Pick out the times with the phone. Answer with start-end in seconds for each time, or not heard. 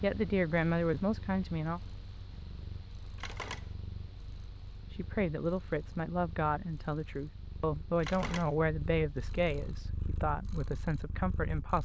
3.1-3.7, 8.0-8.6.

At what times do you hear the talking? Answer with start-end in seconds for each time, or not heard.
0.0-1.8, 4.9-11.7.